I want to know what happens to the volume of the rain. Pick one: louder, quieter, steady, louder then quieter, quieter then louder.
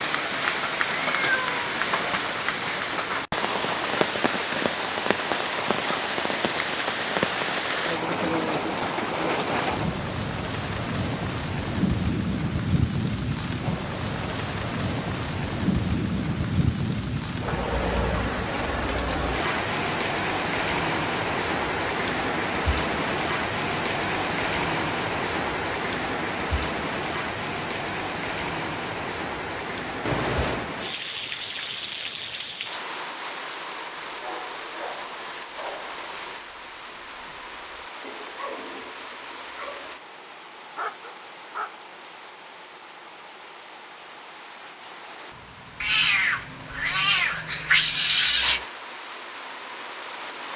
quieter.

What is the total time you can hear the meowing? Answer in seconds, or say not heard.
4 s.